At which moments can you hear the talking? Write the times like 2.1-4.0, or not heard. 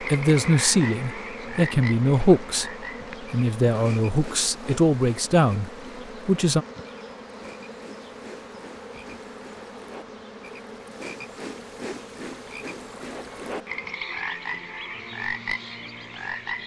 0.0-6.7.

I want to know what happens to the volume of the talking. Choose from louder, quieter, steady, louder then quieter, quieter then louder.
steady.